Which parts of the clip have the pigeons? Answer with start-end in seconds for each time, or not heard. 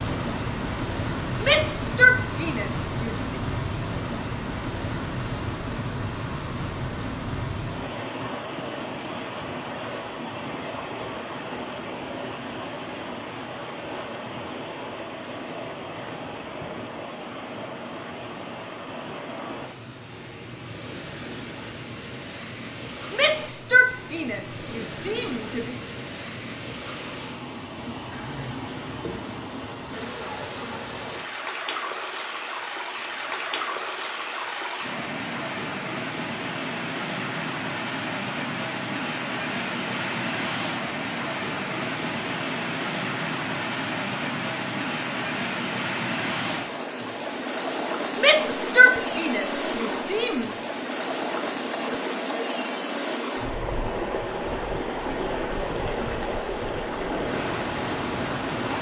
not heard.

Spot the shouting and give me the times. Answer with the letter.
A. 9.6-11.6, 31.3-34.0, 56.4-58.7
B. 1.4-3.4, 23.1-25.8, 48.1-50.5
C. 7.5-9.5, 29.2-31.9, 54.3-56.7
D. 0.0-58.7
B.